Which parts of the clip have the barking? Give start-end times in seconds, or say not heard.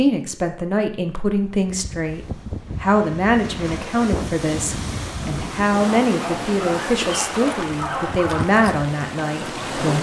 6.0-8.4.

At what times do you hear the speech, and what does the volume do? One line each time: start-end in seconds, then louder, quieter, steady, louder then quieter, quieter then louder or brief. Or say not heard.
0.0-9.9 steady.